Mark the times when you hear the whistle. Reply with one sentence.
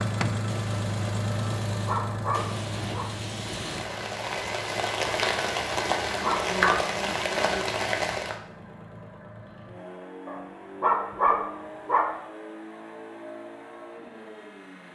The whistle can't be heard in this clip.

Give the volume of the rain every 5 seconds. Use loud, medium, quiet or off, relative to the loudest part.
medium, loud, off.